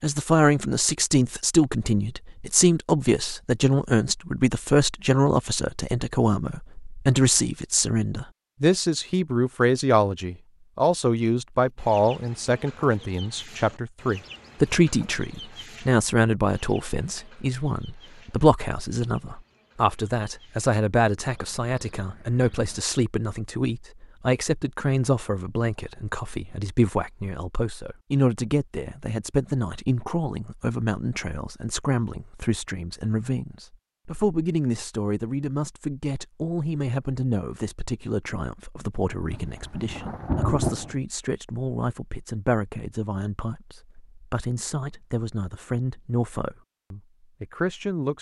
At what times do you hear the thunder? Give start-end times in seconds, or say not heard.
39.3-41.0.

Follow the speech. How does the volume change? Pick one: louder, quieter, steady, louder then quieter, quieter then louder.
quieter.